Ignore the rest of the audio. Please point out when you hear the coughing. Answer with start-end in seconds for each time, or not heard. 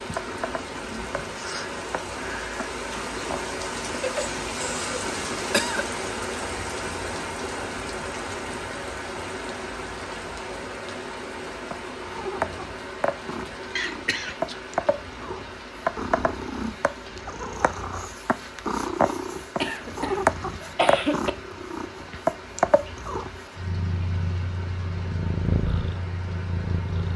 4.0-5.8, 13.8-14.6, 19.6-21.3.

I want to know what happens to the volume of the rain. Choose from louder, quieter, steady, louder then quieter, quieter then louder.
quieter.